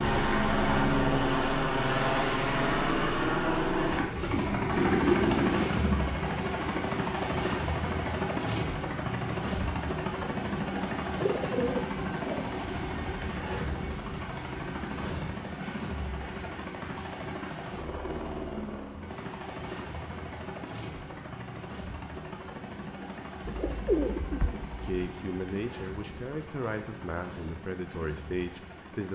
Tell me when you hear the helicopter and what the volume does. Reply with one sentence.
The helicopter can be heard from 0.0 to 29.1 s, getting quieter.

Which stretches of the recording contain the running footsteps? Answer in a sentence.
You can't hear the running footsteps here.